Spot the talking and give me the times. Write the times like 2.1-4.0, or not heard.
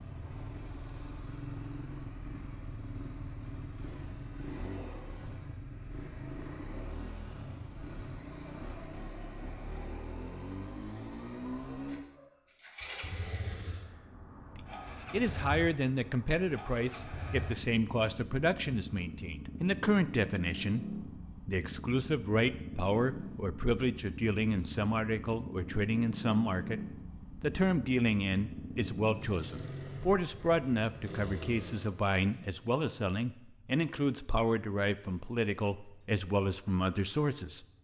14.5-37.6.